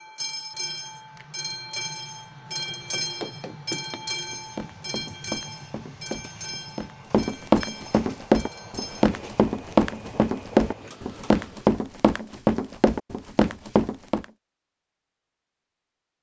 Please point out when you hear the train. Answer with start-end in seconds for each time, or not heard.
0.0-11.7.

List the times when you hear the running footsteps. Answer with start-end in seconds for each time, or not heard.
2.6-14.2.